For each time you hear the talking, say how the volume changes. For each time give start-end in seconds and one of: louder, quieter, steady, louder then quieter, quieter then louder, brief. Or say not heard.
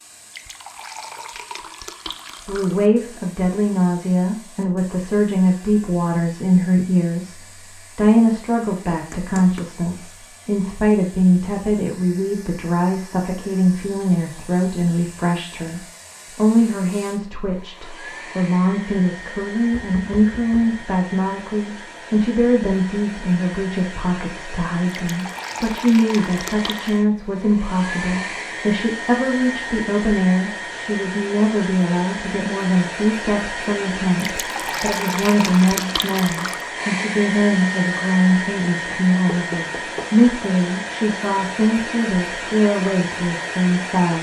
2.5-7.3 steady
8.0-44.1 steady.